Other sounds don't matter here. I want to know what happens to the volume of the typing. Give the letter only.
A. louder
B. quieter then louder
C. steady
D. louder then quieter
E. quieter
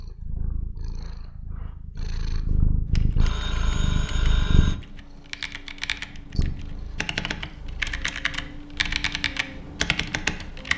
A.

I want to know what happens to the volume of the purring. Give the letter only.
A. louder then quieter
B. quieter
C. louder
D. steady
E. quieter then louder
A.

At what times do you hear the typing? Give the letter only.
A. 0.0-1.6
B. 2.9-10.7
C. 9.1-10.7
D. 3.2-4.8
B.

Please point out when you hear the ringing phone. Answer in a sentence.
The ringing phone can be heard from 3.2 to 4.8 s.